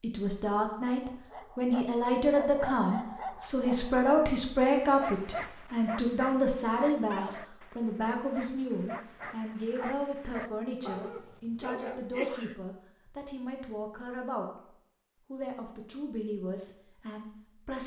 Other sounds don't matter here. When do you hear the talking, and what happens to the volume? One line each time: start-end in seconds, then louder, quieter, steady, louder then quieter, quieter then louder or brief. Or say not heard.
0.0-14.5 quieter
15.3-17.8 brief.